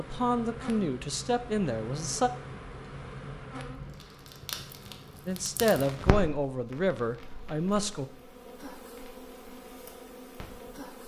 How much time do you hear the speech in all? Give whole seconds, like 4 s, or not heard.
5 s.